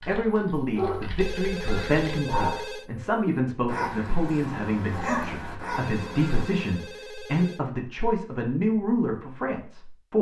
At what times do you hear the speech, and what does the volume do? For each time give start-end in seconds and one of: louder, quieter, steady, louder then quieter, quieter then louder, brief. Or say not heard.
0.1-10.1 steady.